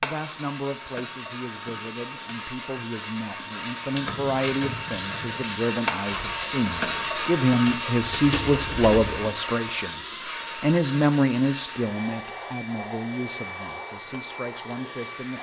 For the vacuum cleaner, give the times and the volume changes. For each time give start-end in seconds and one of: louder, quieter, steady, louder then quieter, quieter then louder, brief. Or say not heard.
0.0-15.3 louder then quieter.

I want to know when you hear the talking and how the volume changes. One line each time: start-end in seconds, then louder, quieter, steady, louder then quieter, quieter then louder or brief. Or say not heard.
0.0-15.3 louder then quieter.